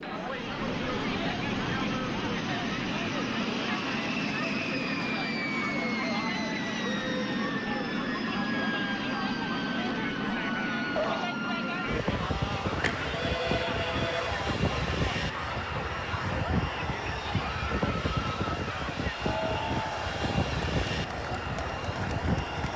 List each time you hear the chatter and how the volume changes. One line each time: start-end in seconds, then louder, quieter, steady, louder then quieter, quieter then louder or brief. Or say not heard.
0.0-22.7 steady.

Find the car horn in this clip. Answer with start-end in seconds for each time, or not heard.
not heard.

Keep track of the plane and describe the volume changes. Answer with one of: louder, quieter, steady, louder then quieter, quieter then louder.
steady.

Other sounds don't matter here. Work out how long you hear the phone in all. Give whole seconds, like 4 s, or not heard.
2 s.